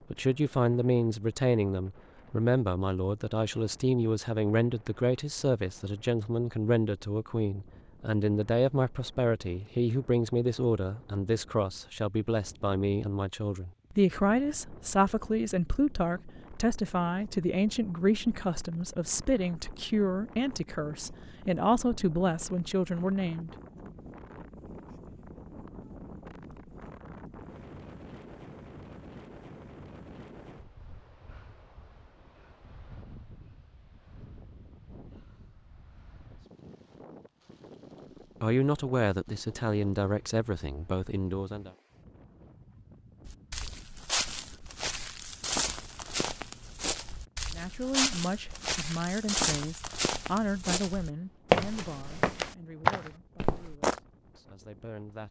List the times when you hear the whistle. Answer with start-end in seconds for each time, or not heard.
not heard.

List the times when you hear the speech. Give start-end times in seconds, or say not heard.
0.1-23.5, 38.4-41.7, 47.5-55.2.